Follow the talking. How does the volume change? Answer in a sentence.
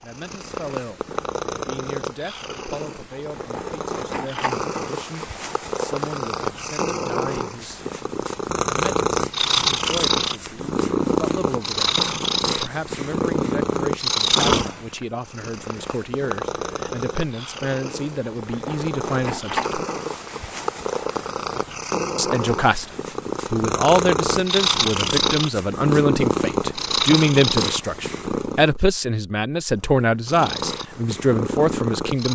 The volume of the talking goes up.